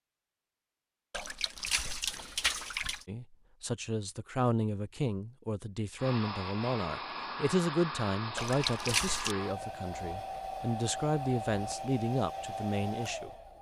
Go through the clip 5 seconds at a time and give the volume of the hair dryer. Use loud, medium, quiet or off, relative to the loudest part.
off, loud, loud.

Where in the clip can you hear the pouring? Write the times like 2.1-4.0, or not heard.
1.1-3.0, 8.3-9.3.